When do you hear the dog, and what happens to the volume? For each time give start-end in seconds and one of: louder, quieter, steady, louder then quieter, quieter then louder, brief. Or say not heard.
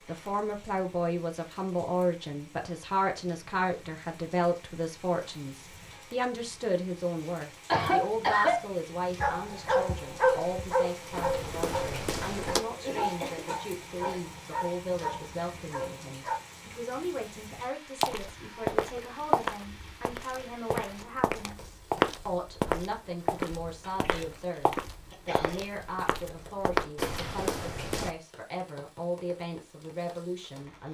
9.2-16.4 quieter.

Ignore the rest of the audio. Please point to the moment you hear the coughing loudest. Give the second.
8 s.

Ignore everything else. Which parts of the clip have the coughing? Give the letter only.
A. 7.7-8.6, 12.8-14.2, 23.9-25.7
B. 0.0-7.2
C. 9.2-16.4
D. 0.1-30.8
A.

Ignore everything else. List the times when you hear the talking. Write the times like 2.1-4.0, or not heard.
0.1-30.8.